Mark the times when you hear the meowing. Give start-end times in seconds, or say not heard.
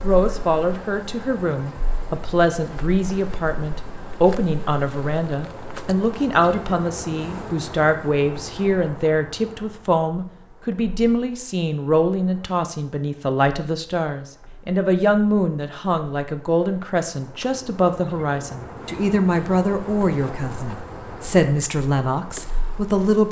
not heard.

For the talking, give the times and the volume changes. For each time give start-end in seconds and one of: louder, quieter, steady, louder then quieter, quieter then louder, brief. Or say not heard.
0.0-23.2 steady.